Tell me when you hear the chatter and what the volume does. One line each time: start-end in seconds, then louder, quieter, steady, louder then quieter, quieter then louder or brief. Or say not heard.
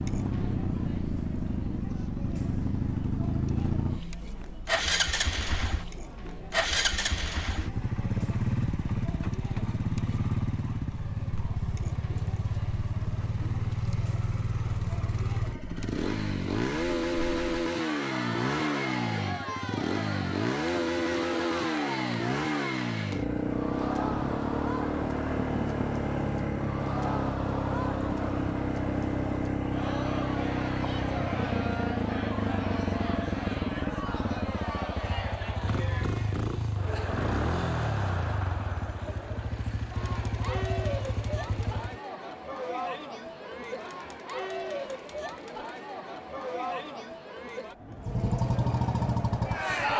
0.0-49.9 louder.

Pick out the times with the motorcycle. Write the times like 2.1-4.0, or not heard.
0.0-42.0, 48.0-49.9.